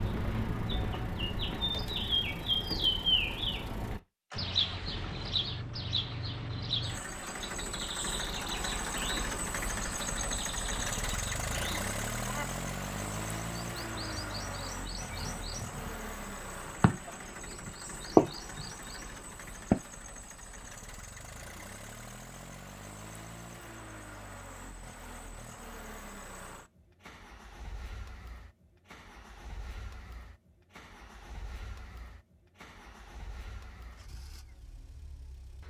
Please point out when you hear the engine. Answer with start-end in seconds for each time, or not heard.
0.0-35.6.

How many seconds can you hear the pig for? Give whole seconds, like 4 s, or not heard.
not heard.